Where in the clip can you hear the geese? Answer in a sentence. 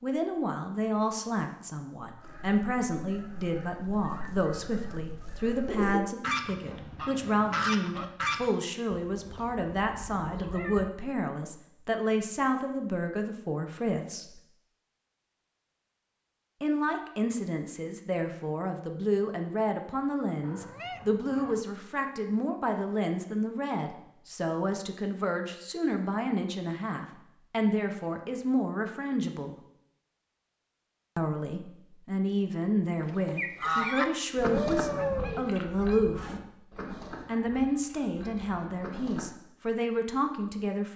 You can hear the geese from 2.1 to 8.5 s and from 33.0 to 39.3 s.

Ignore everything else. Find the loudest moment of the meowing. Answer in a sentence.
The volume of the meowing peaks at 35 seconds.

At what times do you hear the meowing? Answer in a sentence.
You can hear the meowing from 9.0 to 10.9 s, from 20.4 to 21.6 s and from 34.5 to 35.5 s.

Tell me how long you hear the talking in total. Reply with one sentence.
You can hear the talking for 36 seconds altogether.